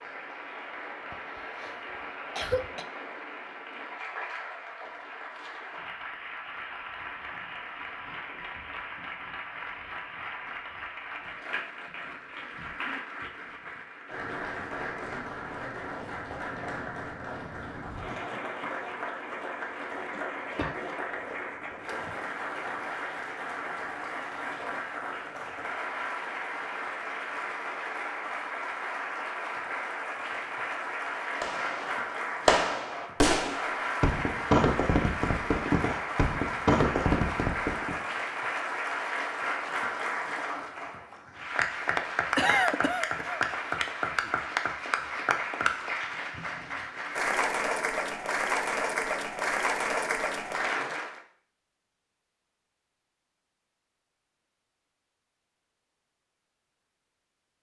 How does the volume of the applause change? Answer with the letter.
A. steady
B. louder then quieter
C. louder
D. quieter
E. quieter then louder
C.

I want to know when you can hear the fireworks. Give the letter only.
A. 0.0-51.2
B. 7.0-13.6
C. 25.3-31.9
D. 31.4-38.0
D.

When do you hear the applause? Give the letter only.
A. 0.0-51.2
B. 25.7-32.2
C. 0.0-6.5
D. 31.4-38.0
A.